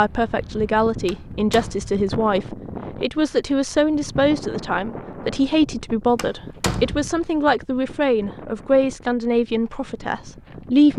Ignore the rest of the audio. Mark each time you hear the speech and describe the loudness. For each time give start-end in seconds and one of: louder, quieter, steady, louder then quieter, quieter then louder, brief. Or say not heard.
0.0-10.9 steady.